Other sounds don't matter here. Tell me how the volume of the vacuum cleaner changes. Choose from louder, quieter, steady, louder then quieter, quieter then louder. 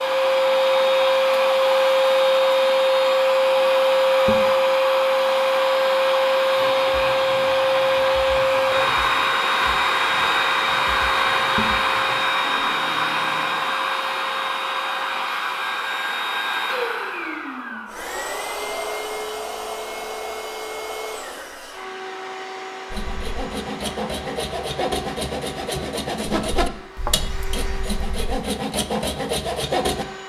quieter.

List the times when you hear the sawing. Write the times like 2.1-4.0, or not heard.
6.5-13.7, 22.9-30.1.